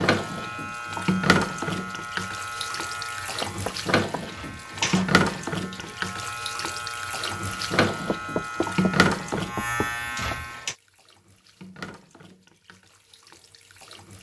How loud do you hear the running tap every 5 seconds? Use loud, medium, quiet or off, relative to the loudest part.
loud, loud, quiet.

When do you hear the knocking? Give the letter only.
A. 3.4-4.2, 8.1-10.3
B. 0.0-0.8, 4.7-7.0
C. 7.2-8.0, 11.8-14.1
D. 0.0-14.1
A.